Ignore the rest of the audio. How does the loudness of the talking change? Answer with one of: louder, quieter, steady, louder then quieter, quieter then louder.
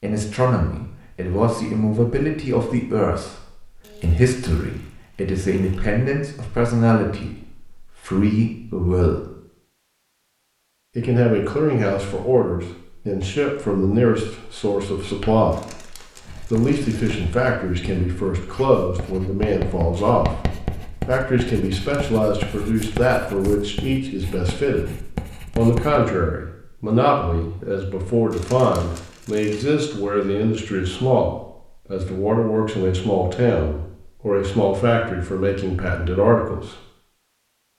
steady.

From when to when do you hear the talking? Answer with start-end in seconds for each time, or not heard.
0.0-9.2, 10.9-24.9, 25.6-36.8.